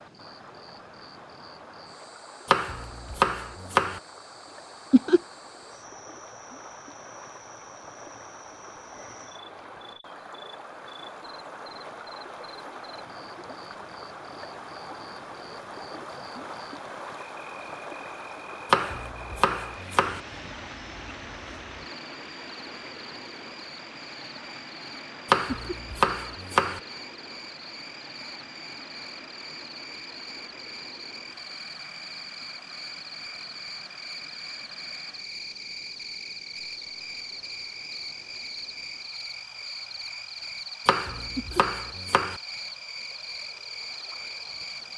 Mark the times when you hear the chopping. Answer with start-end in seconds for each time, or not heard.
2.5-4.0, 18.7-20.2, 25.3-26.8, 40.9-42.4.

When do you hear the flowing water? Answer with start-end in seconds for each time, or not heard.
0.0-44.9.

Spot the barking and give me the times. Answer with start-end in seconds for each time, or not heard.
not heard.